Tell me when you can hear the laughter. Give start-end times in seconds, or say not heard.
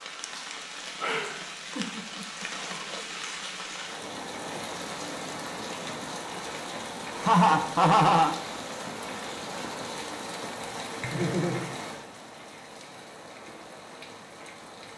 1.8-2.5, 7.1-8.3, 11.0-11.7.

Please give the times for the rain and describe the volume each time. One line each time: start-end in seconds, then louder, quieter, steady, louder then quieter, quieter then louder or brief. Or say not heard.
0.0-14.9 quieter.